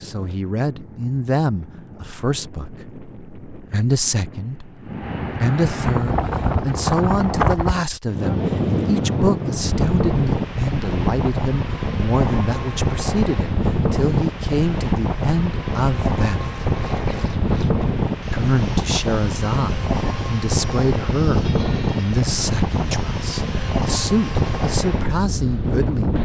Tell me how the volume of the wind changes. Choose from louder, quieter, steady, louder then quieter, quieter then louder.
louder.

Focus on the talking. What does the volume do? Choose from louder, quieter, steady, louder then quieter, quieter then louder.
steady.